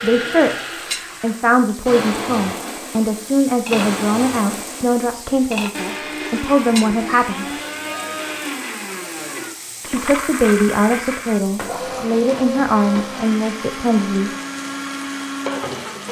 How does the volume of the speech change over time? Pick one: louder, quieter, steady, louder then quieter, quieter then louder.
steady.